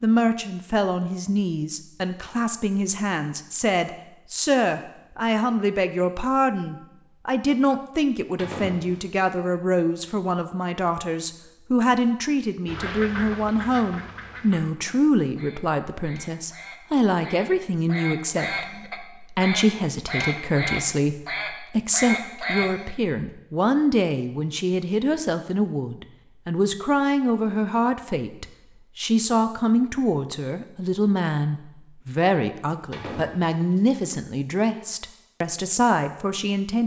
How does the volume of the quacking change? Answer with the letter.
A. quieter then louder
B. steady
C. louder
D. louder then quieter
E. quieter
A.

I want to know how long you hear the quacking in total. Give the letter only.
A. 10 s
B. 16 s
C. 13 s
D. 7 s
A.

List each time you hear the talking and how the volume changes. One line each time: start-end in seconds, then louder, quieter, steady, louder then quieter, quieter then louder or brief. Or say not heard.
0.0-36.8 steady.